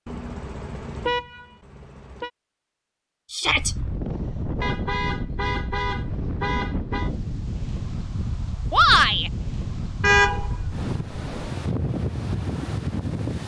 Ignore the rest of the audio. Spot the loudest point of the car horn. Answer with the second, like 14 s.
10 s.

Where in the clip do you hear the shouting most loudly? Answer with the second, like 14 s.
9 s.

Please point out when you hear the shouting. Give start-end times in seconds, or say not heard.
3.3-3.8, 8.7-9.3.